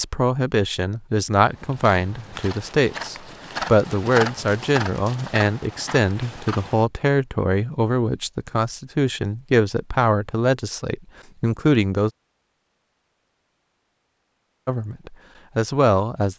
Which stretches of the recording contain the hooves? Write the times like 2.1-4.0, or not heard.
1.5-6.8.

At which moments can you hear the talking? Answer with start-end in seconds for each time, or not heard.
0.0-12.1, 14.7-16.3.